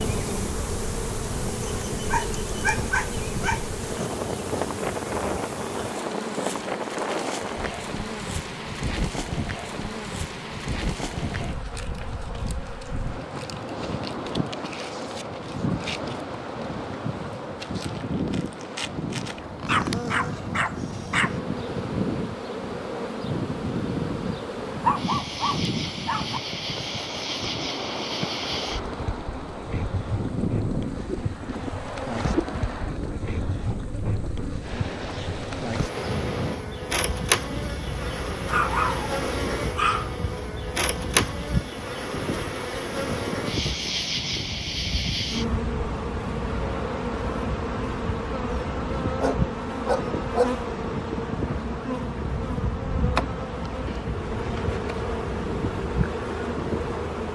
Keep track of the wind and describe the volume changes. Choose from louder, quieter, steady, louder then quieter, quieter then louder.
steady.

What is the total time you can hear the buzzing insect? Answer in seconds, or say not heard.
57 s.